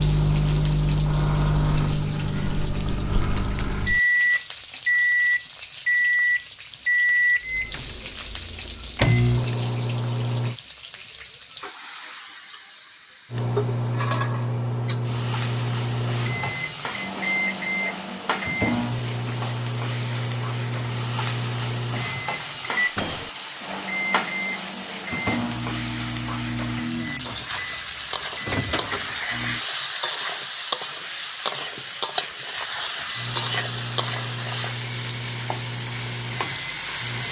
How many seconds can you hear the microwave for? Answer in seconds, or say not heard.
31 s.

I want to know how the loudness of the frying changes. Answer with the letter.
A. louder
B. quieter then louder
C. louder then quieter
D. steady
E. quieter
A.